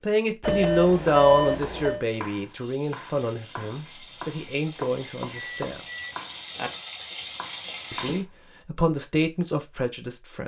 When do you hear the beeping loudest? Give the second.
1 s.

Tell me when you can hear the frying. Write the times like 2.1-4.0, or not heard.
2.0-8.2.